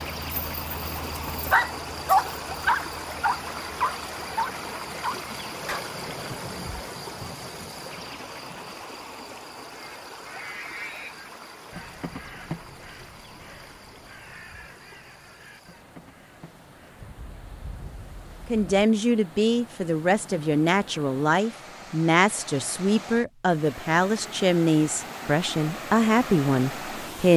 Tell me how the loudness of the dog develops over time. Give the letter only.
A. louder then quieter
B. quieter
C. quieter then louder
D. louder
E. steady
A.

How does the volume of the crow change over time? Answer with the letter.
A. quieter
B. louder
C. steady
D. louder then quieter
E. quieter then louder
A.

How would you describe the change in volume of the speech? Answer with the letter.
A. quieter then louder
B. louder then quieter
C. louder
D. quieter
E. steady
E.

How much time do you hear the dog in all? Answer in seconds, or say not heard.
6 s.